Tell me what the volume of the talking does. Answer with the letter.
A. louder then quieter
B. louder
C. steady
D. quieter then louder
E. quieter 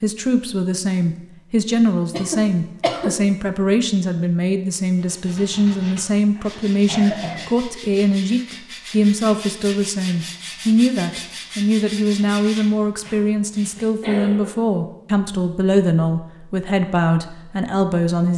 C.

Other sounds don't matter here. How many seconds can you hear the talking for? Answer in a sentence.
The talking can be heard for 18 seconds in total.